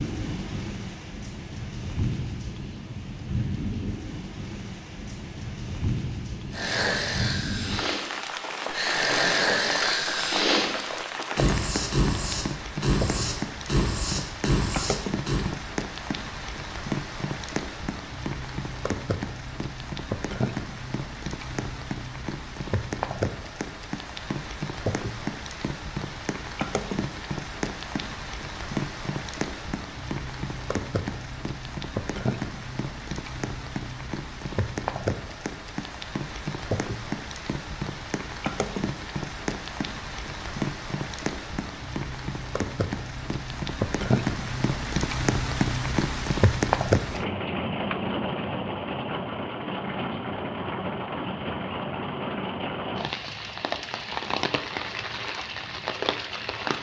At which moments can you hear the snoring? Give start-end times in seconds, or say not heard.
6.5-15.5.